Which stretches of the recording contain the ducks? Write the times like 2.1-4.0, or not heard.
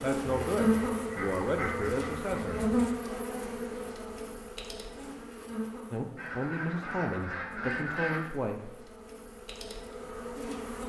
0.2-2.8, 6.2-8.2.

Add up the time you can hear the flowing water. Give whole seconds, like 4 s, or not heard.
not heard.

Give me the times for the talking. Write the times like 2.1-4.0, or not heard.
0.0-2.6, 5.9-8.8.